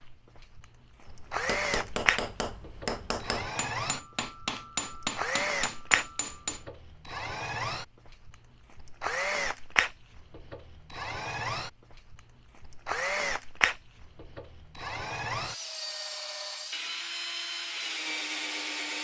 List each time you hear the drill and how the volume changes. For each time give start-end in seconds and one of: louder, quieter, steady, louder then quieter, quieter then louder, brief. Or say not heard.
0.0-18.9 steady.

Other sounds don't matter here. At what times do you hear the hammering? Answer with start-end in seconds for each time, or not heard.
1.1-6.7.